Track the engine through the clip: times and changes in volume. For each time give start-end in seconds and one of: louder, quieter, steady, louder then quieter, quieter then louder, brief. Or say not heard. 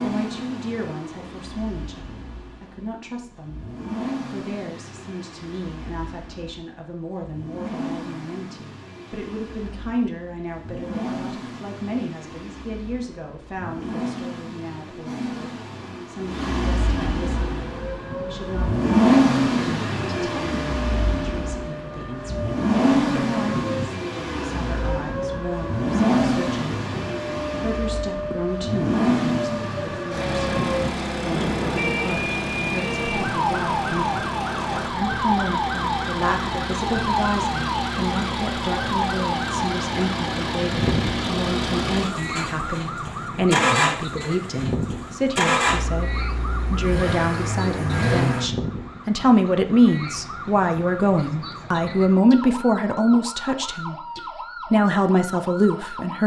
0.0-48.5 louder.